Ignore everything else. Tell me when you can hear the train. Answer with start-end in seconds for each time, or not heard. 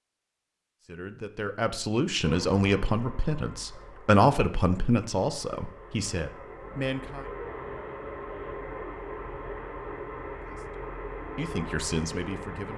2.2-12.7.